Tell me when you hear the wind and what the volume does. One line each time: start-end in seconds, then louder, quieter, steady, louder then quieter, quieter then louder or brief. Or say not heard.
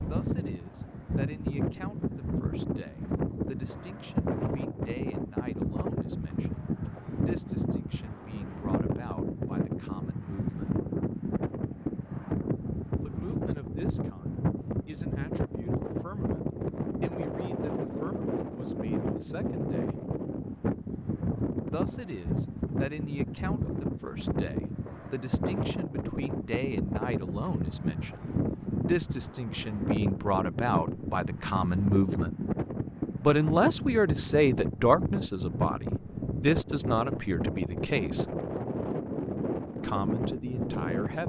0.0-41.2 steady.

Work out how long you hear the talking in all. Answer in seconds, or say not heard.
35 s.